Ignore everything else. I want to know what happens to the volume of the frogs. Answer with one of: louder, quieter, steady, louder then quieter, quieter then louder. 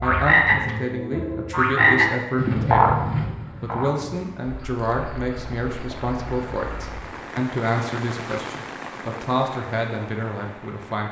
louder then quieter.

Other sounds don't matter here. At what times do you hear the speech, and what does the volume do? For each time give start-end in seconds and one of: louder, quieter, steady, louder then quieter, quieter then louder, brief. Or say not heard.
0.0-11.0 steady.